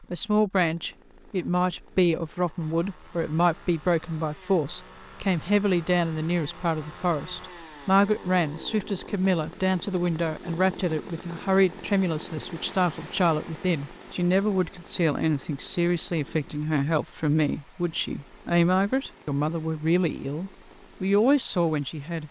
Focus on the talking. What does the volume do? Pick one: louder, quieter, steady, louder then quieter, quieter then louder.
steady.